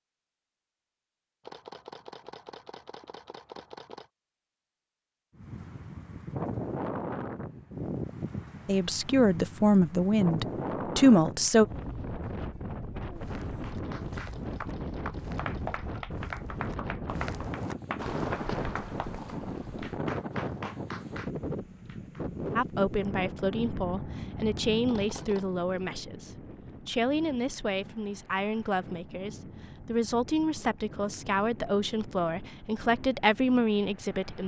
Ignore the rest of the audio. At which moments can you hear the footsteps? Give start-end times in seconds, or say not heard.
13.2-20.7.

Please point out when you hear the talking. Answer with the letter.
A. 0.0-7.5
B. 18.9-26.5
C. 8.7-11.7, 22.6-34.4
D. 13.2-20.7
C.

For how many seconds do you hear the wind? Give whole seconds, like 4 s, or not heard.
29 s.